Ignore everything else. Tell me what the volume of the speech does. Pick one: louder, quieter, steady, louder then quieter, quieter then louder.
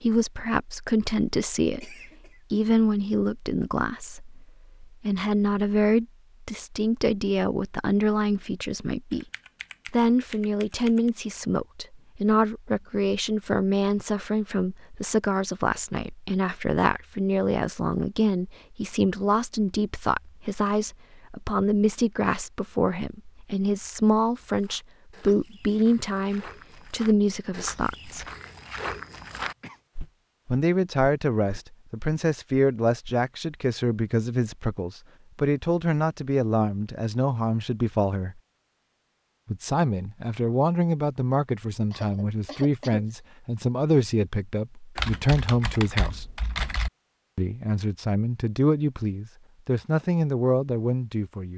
steady.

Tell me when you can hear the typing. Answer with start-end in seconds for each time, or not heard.
9.1-11.1, 45.0-46.9.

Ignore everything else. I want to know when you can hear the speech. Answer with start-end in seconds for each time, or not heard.
0.0-9.2, 9.9-28.2, 30.5-38.4, 39.5-46.4, 47.4-51.5.